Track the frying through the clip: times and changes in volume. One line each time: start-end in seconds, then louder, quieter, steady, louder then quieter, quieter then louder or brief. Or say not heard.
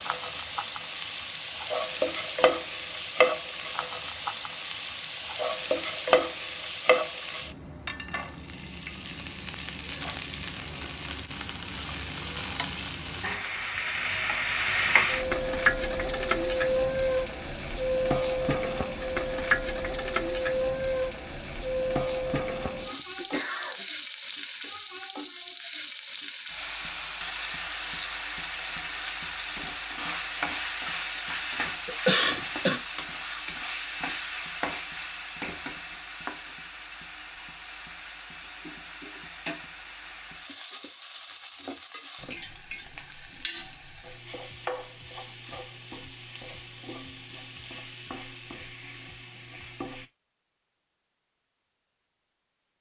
0.0-50.1 quieter.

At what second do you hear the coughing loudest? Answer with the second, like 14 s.
32 s.